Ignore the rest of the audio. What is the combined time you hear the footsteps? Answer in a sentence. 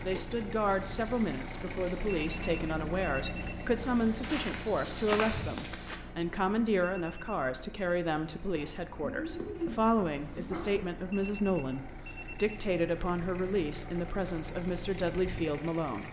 The footsteps can be heard for 5 seconds in total.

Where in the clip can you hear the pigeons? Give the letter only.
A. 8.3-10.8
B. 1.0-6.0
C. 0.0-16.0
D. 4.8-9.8
A.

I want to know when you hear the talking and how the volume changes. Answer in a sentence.
The talking can be heard from 0.0 to 16.0 s, at a steady volume.